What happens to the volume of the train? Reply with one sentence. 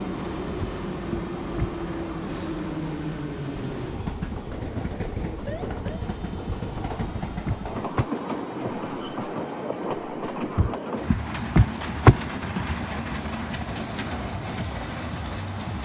The loudness of the train stays about the same.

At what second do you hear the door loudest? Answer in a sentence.
The loudest moment of the door is at 12 seconds.